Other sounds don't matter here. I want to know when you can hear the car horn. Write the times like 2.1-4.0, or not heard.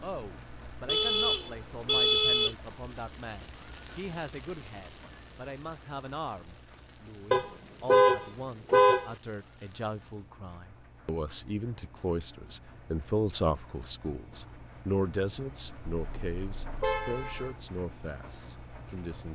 0.8-2.5, 7.3-9.1, 15.9-17.6.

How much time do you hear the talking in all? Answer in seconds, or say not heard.
19 s.